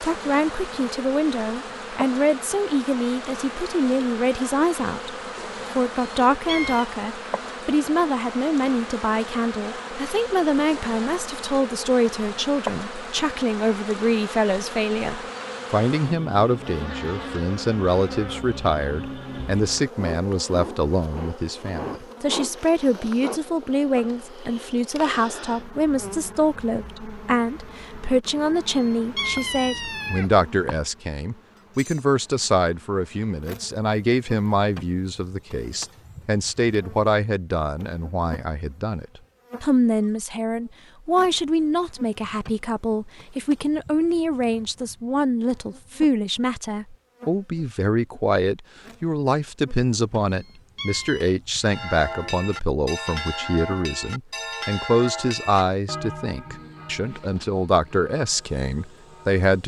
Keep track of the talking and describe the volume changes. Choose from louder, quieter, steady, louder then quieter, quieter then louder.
steady.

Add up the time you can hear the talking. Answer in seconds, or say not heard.
59 s.